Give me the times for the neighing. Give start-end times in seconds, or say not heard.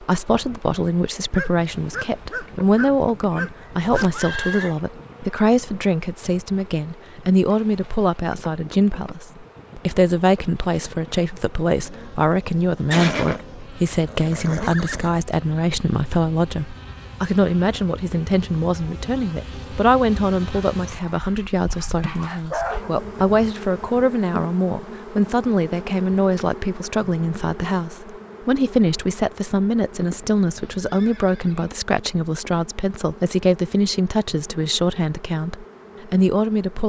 3.9-4.8, 12.9-15.2, 30.4-31.8.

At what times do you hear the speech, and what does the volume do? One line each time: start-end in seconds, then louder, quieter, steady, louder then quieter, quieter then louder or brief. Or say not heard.
0.0-36.8 steady.